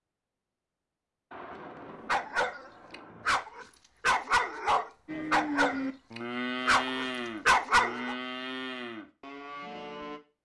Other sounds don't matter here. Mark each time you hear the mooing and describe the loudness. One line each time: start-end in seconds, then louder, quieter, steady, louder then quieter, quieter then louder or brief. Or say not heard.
5.0-10.2 quieter.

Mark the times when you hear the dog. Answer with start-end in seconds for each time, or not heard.
2.0-8.2.